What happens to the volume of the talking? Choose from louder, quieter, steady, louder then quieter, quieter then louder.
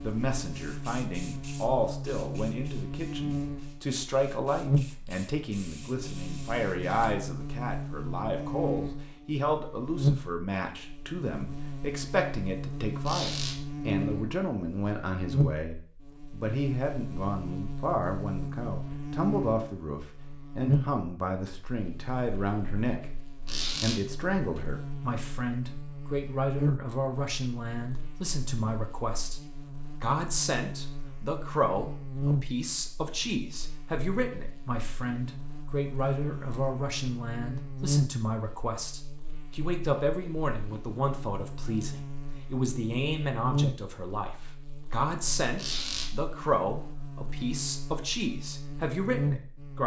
steady.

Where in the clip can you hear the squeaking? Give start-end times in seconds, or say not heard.
13.1-13.6, 23.4-24.0, 45.5-46.1.